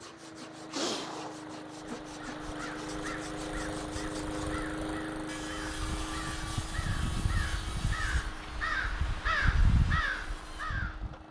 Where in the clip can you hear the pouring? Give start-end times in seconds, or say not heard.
not heard.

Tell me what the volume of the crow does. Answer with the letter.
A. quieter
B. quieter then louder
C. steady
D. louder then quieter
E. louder
E.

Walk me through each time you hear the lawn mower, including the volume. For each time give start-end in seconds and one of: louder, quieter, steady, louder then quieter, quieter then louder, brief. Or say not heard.
0.0-11.2 louder then quieter.